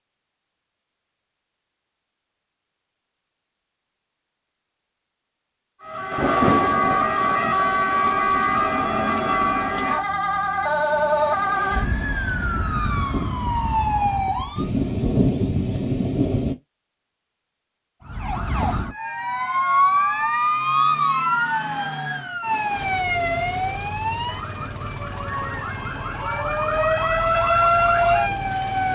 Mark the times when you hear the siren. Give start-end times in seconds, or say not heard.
5.8-14.7, 18.1-28.9.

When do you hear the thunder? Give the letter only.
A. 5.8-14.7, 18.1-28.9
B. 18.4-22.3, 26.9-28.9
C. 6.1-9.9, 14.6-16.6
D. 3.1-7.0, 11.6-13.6
C.